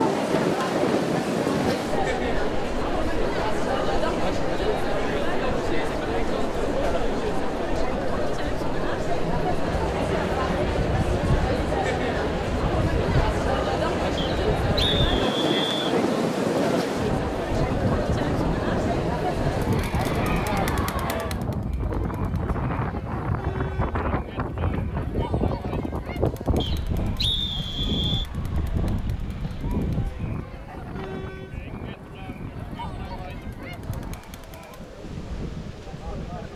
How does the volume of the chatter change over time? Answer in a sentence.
The loudness of the chatter goes down.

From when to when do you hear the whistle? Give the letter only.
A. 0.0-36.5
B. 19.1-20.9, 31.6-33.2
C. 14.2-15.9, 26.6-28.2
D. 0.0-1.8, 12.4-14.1
C.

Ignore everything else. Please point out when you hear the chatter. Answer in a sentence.
You can hear the chatter from 0.0 to 36.5 s.